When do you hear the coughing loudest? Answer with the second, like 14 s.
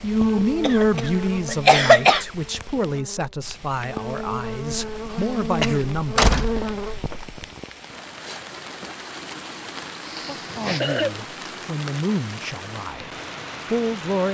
2 s.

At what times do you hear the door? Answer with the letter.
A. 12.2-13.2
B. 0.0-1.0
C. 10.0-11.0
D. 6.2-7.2
D.